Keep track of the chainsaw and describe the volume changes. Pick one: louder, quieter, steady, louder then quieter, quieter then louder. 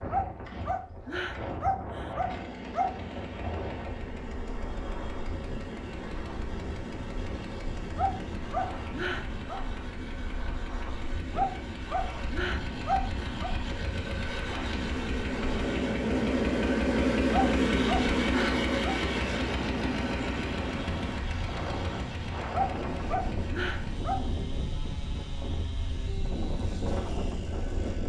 louder then quieter.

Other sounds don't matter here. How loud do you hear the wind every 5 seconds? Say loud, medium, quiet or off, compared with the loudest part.
medium, medium, medium, loud, loud, loud.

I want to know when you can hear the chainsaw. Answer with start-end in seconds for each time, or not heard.
0.0-28.0.